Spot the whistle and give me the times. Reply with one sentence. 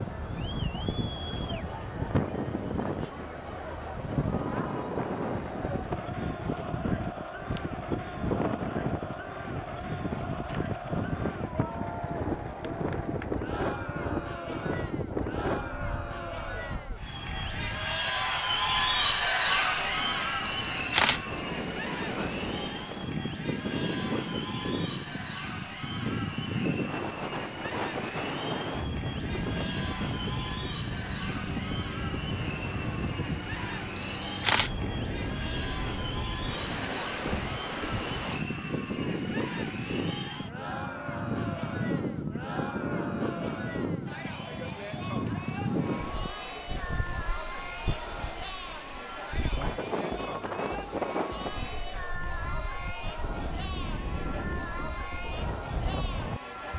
You can't hear the whistle here.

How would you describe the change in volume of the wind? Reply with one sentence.
The loudness of the wind stays about the same.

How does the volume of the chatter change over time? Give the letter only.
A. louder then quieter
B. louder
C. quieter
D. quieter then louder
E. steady
A.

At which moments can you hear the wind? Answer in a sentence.
The wind can be heard from 0.0 to 56.7 s.